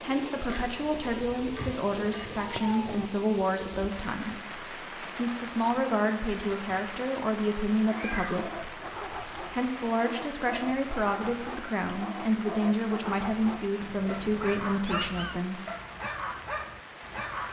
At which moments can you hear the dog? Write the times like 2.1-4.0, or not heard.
7.8-17.4.